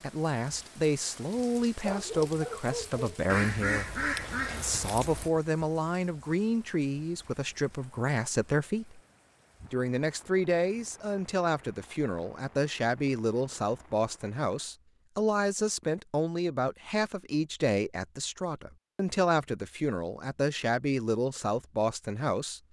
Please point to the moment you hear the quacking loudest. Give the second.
4 s.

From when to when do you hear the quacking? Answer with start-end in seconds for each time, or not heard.
3.2-5.3.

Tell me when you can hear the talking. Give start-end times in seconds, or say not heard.
0.0-9.0, 9.7-22.6.